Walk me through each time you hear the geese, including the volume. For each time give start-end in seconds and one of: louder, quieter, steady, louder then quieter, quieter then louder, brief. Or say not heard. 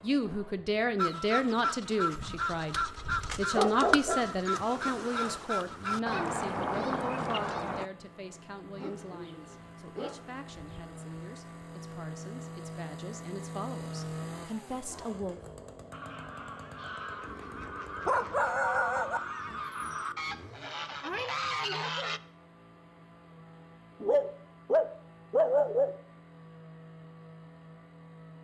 0.9-7.9 steady
15.9-22.2 louder.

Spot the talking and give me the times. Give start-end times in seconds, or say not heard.
0.0-15.4.